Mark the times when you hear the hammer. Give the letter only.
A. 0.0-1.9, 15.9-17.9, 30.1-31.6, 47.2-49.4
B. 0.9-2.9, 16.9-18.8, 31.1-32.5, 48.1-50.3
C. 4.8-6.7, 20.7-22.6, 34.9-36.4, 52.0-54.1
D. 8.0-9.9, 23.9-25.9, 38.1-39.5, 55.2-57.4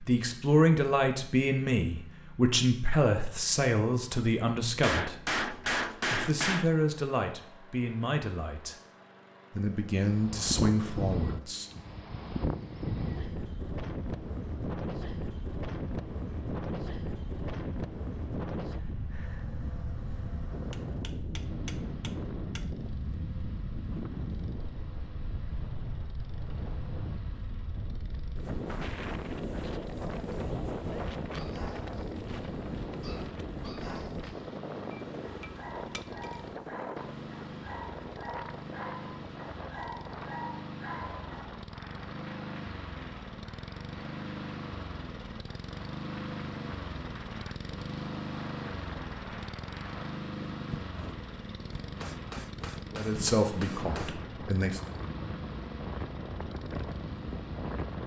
C.